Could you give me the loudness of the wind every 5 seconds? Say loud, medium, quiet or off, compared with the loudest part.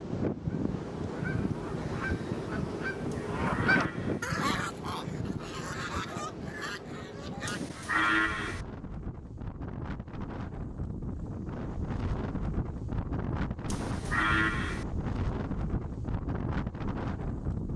loud, medium, loud, loud.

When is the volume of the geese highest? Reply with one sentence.
The loudest moment of the geese is at 4 seconds.